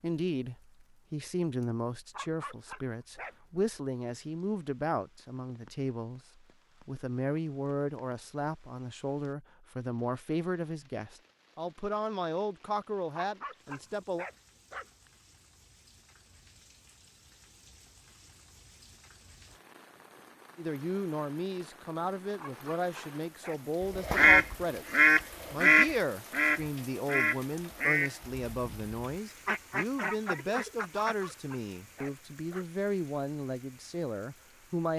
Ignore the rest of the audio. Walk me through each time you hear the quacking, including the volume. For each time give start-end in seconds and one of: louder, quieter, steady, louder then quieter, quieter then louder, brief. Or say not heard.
23.9-31.1 quieter then louder.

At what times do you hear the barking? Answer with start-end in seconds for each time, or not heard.
2.1-3.4, 13.1-15.1, 22.4-23.6, 31.1-32.7.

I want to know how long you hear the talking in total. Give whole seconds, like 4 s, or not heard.
28 s.